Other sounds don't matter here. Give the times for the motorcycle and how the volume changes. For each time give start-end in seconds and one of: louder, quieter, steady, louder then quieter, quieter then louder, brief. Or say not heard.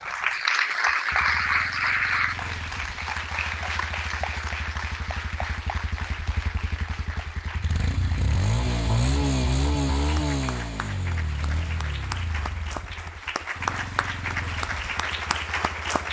0.0-16.0 louder then quieter.